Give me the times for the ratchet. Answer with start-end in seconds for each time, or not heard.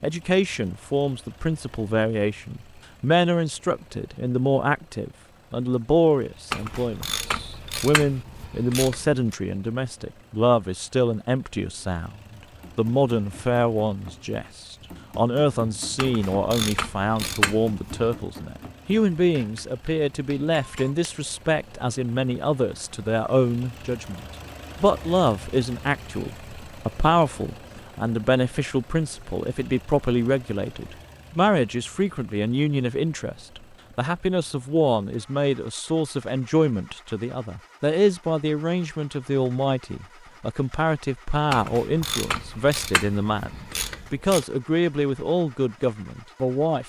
6.5-9.2, 15.9-18.1, 41.5-44.5.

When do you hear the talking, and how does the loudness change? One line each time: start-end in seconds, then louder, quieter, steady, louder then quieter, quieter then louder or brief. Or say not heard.
0.0-46.8 steady.